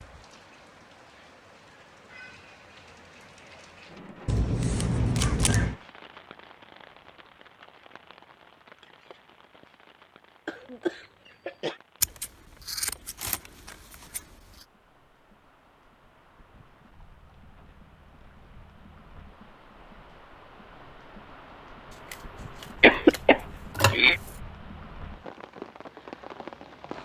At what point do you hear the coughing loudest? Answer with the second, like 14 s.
23 s.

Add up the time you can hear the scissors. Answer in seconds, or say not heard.
6 s.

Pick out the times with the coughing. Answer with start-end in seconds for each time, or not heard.
5.2-5.8, 10.4-11.8, 22.8-24.2.